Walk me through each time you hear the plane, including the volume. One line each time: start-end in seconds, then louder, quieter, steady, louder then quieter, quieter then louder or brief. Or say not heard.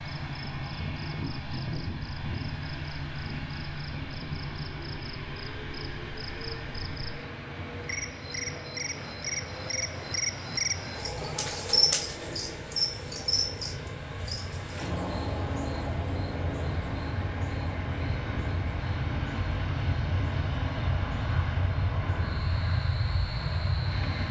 0.0-24.2 quieter then louder.